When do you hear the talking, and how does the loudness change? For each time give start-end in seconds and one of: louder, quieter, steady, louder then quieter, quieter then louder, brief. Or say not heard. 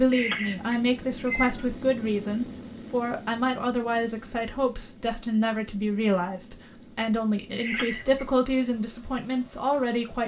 0.0-10.2 steady.